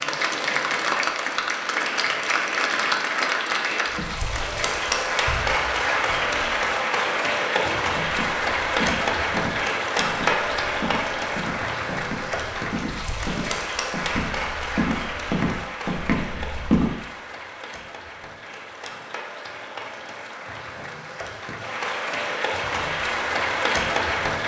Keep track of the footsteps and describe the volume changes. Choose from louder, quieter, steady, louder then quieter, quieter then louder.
louder.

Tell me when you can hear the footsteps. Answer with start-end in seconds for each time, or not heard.
7.0-16.9.